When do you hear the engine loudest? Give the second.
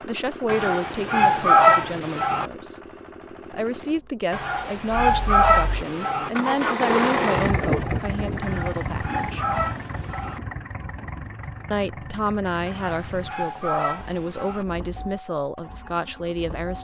7 s.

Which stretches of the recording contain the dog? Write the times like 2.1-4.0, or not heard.
0.5-2.5, 4.3-6.3, 8.4-10.4, 12.7-14.7.